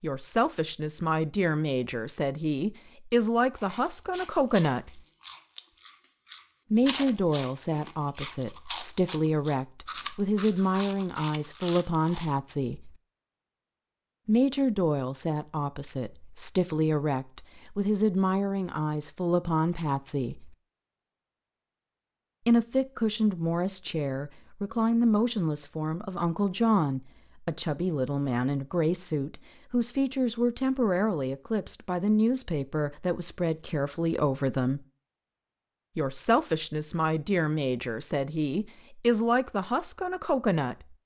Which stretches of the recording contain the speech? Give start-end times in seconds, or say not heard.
0.0-5.0, 6.7-12.9, 14.2-20.6, 22.4-34.9, 36.0-41.0.